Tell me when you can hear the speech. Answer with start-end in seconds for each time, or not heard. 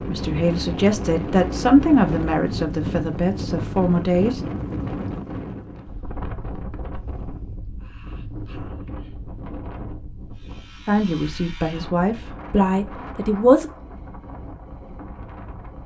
0.0-4.4, 10.8-13.7.